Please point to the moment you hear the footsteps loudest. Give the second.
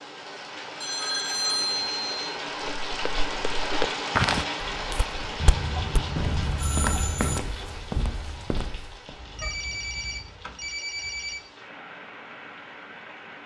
4 s.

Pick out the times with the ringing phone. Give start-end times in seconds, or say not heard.
0.8-2.2, 5.4-7.4, 9.2-11.4.